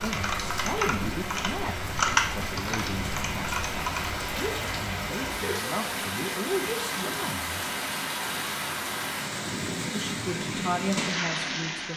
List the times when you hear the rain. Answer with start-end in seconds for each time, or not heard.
0.0-11.9.